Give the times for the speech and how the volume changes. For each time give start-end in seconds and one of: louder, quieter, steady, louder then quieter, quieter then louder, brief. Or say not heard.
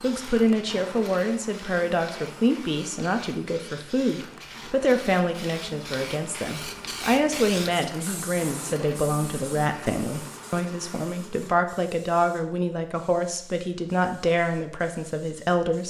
0.0-15.8 steady.